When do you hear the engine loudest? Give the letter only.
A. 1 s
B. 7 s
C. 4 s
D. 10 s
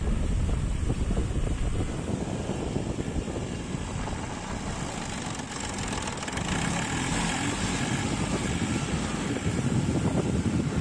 B.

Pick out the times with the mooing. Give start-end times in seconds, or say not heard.
not heard.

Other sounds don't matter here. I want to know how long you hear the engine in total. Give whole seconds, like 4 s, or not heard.
11 s.